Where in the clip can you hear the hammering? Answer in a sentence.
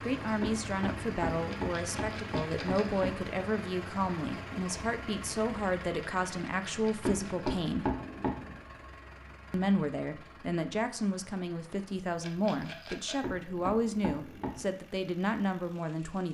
The hammering can be heard from 0.4 to 3.2 s, from 7.0 to 8.6 s and from 13.2 to 14.7 s.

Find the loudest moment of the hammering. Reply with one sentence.
The volume of the hammering peaks at 8 seconds.